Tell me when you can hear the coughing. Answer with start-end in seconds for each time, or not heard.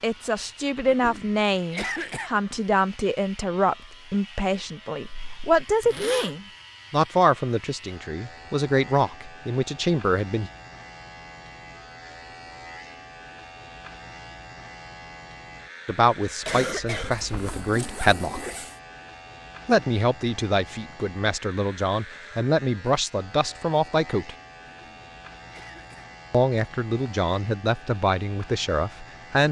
0.8-2.4, 16.4-17.6, 24.6-26.1.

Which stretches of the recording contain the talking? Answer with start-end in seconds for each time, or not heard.
0.0-10.5, 15.8-18.4, 19.6-24.4, 26.3-29.4.